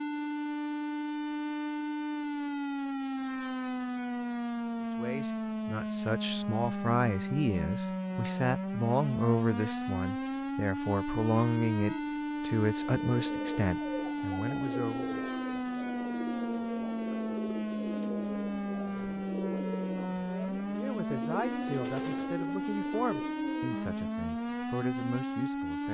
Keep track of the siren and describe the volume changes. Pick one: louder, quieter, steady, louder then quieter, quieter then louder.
steady.